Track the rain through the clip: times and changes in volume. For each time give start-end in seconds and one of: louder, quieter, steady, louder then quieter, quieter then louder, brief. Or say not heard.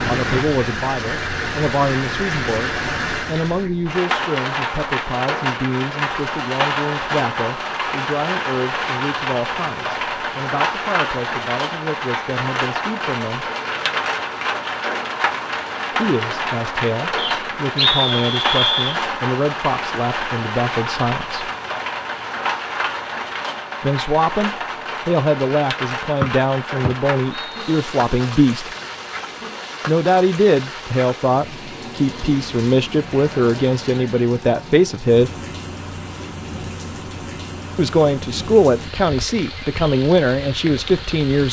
0.0-41.4 quieter.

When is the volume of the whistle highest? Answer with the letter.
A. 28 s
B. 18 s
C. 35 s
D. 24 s
B.